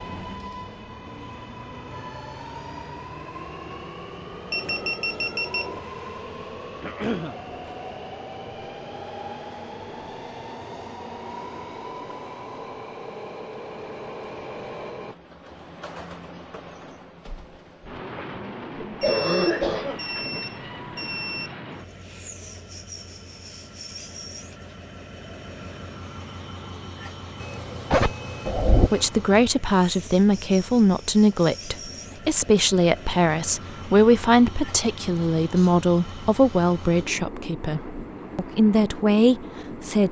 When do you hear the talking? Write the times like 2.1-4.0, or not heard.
28.9-40.0.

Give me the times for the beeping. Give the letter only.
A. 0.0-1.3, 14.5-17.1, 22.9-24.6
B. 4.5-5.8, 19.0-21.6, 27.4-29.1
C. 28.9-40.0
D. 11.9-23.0
B.